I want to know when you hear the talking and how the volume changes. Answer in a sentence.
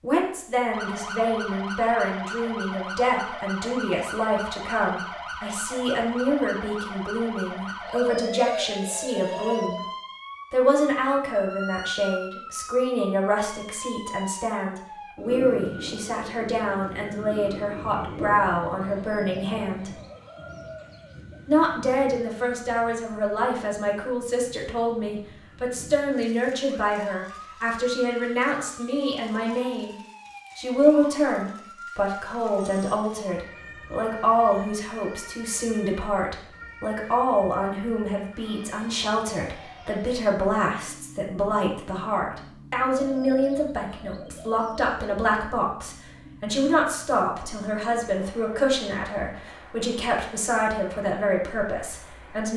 The talking can be heard from 0.0 to 9.8 s, at a steady volume; from 10.5 to 19.9 s, at a steady volume; from 21.4 to 29.9 s, at a steady volume; and from 30.6 to 52.5 s, at a steady volume.